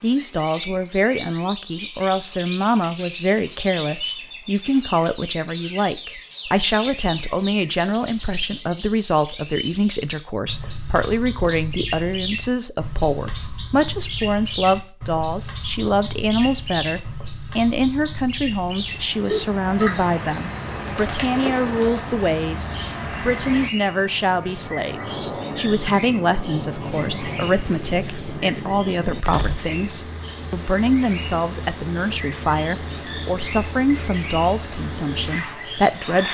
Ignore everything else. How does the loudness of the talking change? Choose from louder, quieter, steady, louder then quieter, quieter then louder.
steady.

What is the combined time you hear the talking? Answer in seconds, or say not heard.
36 s.